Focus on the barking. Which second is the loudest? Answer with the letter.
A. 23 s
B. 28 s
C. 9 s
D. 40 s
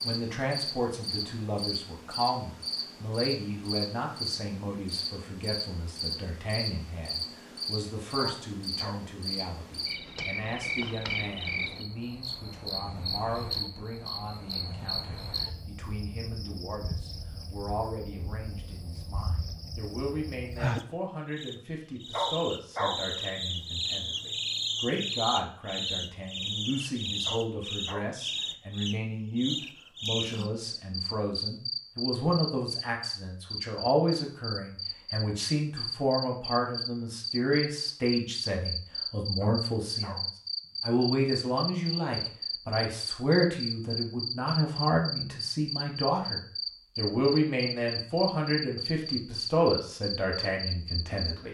A.